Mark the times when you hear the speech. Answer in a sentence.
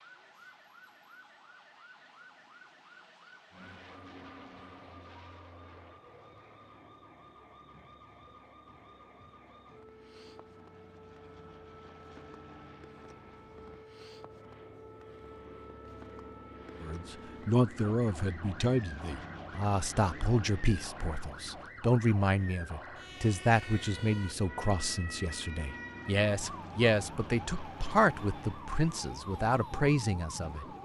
You can hear the speech from 16.8 to 30.6 s.